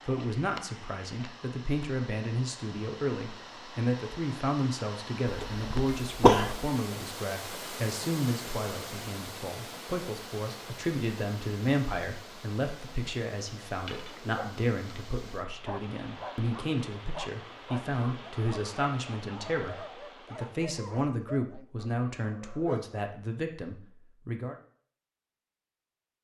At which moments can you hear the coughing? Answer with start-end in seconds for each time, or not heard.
5.2-6.7.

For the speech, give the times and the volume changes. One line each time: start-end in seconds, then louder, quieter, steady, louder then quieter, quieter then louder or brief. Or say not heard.
0.1-24.6 steady.